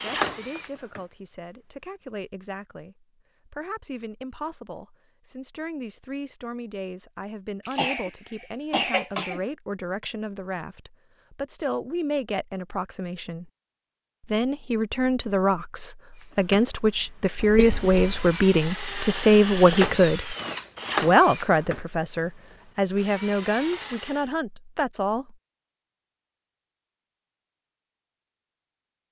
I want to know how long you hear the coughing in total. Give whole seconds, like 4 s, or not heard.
3 s.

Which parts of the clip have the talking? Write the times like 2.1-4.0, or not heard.
0.0-13.5, 14.2-20.4, 21.0-25.4.